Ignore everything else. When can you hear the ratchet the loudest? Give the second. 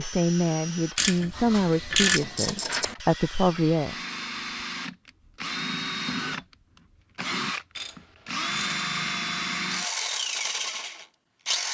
2 s.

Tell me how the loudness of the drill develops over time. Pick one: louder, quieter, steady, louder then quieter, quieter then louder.
louder.